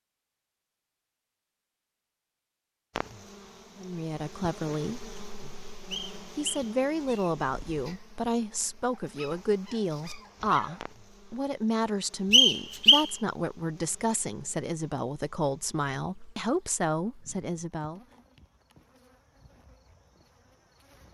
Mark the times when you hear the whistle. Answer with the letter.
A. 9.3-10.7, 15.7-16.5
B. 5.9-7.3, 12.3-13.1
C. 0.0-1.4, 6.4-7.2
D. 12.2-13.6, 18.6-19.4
B.